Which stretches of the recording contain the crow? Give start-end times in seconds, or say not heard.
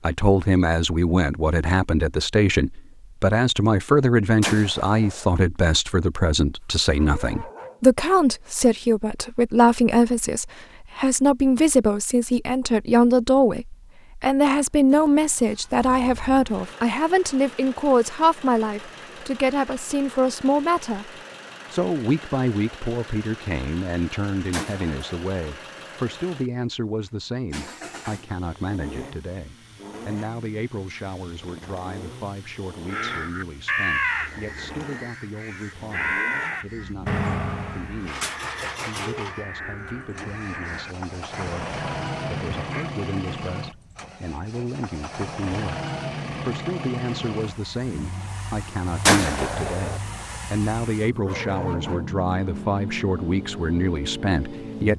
32.9-42.9.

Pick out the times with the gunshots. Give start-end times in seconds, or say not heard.
4.4-5.3, 24.5-25.2, 49.0-50.0.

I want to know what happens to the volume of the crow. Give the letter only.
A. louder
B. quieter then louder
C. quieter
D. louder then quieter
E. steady
C.